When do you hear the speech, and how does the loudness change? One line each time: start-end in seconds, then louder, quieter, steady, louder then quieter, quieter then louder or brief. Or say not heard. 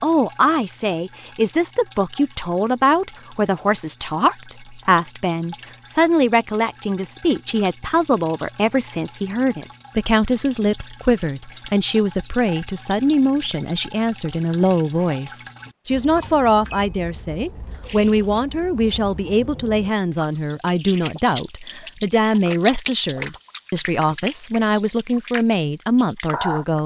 0.0-26.8 steady.